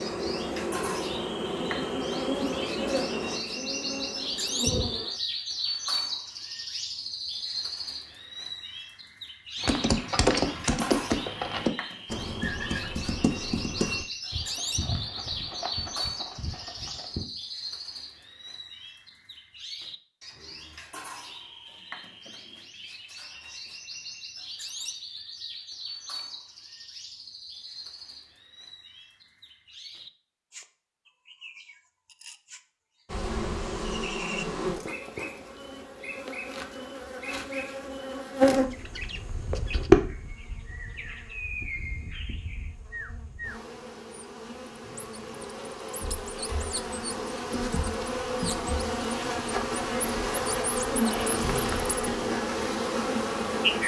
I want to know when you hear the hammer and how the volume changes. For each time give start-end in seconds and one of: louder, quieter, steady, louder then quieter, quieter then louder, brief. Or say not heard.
not heard.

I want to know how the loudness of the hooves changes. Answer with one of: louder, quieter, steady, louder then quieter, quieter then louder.
quieter.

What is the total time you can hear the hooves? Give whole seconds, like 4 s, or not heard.
8 s.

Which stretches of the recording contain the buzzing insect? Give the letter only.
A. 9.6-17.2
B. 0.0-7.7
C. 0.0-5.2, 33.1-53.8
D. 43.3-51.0
C.